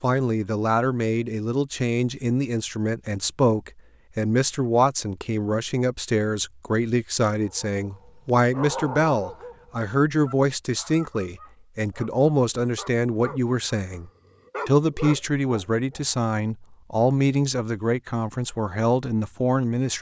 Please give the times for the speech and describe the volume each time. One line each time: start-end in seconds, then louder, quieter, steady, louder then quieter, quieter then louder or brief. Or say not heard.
0.0-19.9 steady.